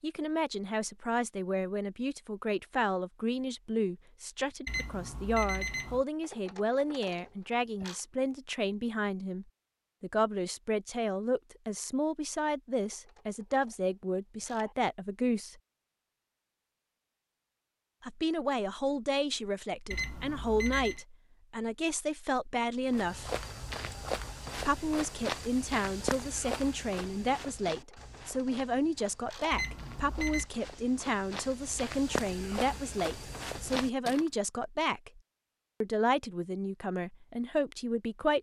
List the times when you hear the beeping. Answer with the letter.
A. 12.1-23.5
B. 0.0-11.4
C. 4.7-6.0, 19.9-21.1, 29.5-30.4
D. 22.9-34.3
C.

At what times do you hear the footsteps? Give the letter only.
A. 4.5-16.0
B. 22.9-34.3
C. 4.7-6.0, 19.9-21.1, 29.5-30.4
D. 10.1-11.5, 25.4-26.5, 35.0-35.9
B.